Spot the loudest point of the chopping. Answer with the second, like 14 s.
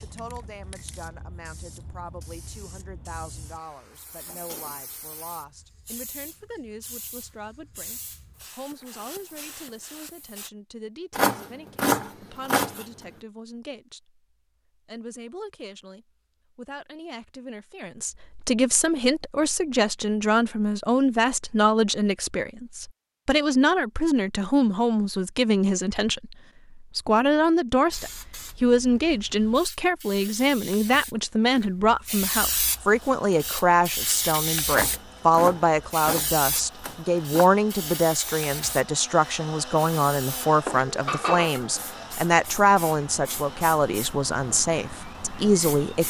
12 s.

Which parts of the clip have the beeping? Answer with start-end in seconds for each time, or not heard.
not heard.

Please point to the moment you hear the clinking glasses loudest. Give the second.
41 s.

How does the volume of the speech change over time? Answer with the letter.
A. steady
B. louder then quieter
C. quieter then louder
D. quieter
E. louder
E.